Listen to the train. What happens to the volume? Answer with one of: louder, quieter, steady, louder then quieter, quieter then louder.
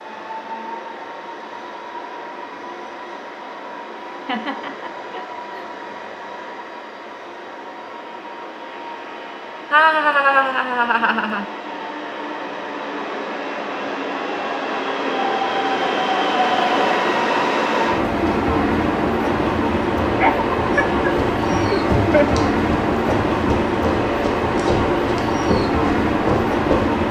louder.